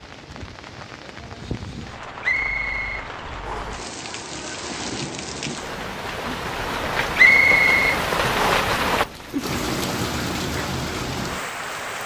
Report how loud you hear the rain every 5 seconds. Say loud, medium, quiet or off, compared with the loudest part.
medium, loud, loud.